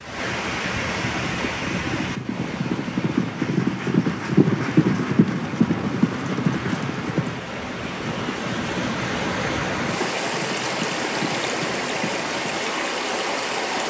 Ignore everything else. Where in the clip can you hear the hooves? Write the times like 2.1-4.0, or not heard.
1.1-12.5.